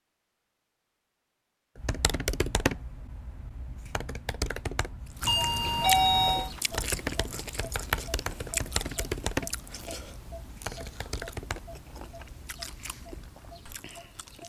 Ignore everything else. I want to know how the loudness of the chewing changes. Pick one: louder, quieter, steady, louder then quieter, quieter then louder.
quieter.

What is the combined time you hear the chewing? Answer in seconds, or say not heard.
9 s.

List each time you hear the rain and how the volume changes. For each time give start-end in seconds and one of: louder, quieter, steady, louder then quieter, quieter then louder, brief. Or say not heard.
not heard.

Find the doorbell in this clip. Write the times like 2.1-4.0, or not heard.
5.2-6.5.